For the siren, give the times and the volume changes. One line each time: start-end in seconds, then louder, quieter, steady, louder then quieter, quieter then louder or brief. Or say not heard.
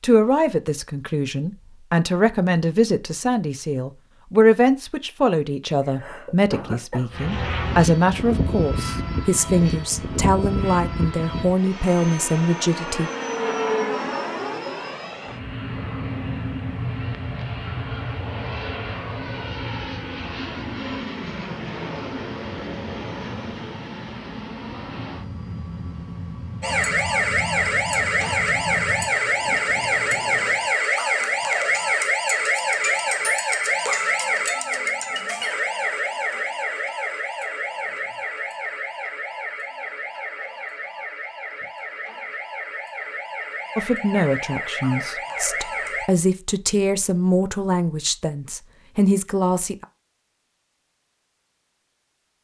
26.6-46.1 quieter.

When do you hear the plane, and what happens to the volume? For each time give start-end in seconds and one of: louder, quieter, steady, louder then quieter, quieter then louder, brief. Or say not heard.
7.1-30.8 quieter.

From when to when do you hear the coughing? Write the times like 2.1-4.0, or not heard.
5.8-7.1.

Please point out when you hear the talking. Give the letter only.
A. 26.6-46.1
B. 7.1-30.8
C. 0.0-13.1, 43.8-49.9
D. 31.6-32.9
C.